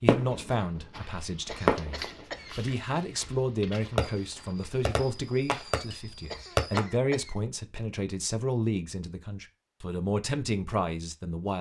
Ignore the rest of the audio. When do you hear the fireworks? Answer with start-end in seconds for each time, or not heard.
0.1-0.9, 1.6-2.2, 4.0-6.8.